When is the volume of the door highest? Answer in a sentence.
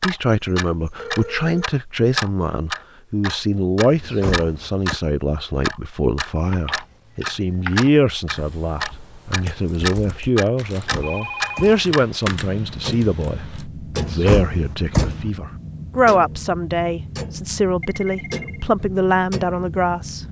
The volume of the door peaks at 15 seconds.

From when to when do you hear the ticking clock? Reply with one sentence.
The ticking clock can be heard from 0.0 to 20.2 s.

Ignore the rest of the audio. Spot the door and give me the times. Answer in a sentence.
You can hear the door from 3.9 to 5.0 s, from 10.7 to 11.8 s and from 13.9 to 15.3 s.